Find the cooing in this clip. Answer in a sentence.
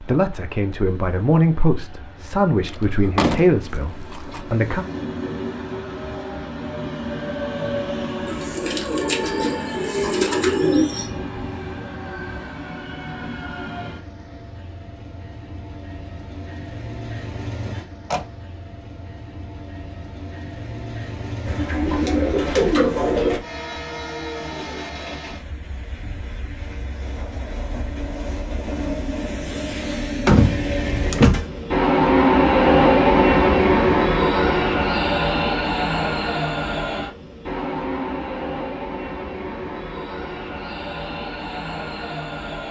You can hear the cooing from 8.2 to 11.1 s and from 21.4 to 23.4 s.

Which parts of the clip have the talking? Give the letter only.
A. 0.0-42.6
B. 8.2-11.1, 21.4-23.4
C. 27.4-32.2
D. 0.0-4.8
D.